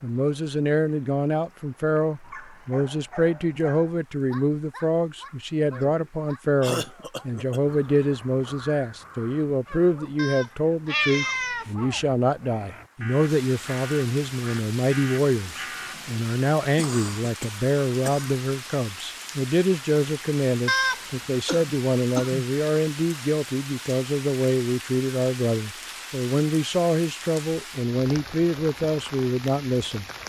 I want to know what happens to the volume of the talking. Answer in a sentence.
The loudness of the talking stays about the same.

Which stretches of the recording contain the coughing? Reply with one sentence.
You can hear the coughing from 5.7 to 7.8 s, from 16.8 to 18.4 s and from 21.4 to 22.5 s.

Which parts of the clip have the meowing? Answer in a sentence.
You can hear the meowing from 10.2 to 11.9 s and from 20.6 to 21.1 s.